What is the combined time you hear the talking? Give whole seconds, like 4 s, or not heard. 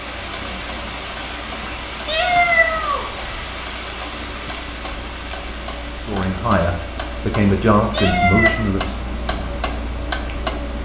3 s.